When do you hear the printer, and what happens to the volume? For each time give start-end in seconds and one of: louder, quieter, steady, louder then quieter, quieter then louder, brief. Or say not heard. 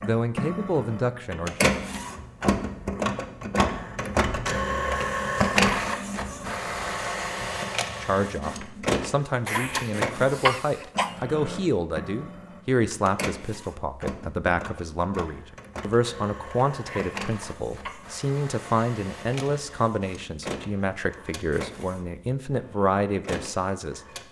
0.0-24.2 quieter.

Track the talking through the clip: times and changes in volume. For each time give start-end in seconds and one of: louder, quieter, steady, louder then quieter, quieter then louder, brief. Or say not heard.
0.0-1.7 brief
8.0-24.0 steady.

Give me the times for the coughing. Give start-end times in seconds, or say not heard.
5.6-6.2, 9.4-11.2, 16.9-18.0.